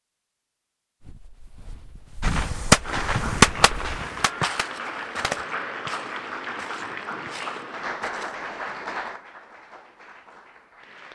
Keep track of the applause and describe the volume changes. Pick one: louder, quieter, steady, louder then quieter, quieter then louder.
quieter.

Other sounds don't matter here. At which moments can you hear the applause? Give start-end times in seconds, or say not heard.
2.8-11.1.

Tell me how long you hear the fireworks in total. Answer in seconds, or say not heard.
3 s.